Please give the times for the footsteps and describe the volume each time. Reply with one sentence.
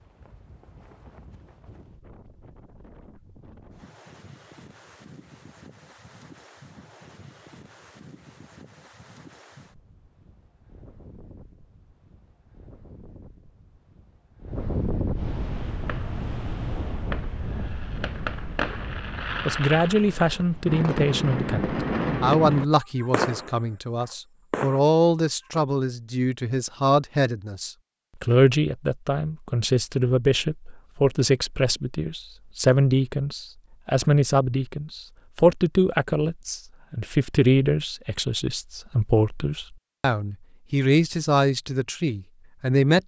The footsteps can't be heard in this clip.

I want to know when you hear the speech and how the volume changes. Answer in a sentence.
The speech can be heard from 19.4 to 43.0 s, at a steady volume.